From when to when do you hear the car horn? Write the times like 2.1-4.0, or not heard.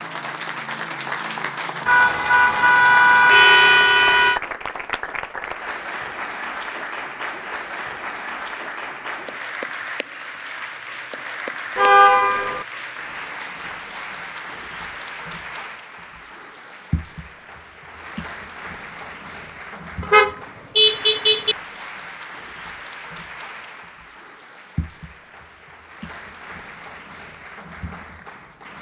1.9-4.4, 11.8-12.7, 20.0-21.6.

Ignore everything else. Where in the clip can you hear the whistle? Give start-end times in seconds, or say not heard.
not heard.